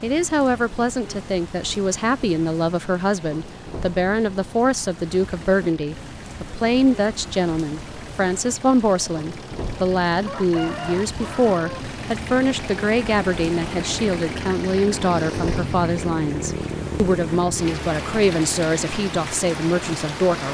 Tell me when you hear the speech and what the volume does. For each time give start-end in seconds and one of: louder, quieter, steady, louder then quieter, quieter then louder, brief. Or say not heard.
0.0-20.4 steady.